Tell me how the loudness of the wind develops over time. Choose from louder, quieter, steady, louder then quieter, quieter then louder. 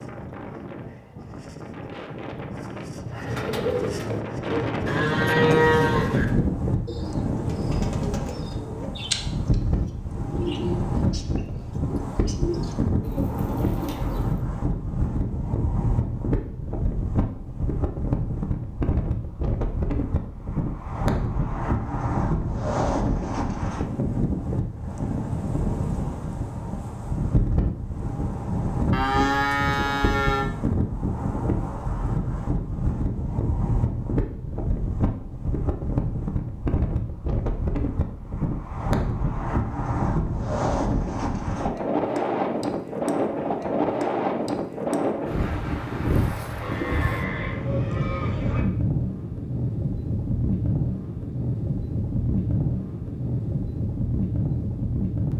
steady.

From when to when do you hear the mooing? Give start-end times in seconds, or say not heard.
4.8-6.2, 28.9-30.5, 46.6-48.6.